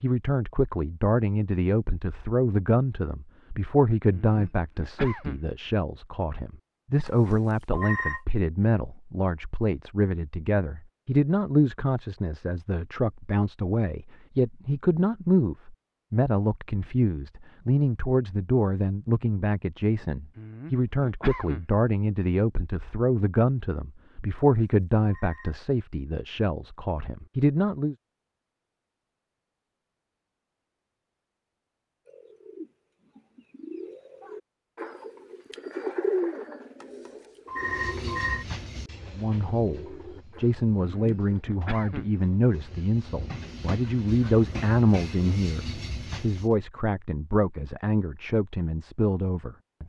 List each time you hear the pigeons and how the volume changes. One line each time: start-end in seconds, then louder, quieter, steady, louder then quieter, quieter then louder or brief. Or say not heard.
32.0-41.5 louder then quieter.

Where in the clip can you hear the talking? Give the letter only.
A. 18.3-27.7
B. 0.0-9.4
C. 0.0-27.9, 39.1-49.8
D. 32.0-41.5
C.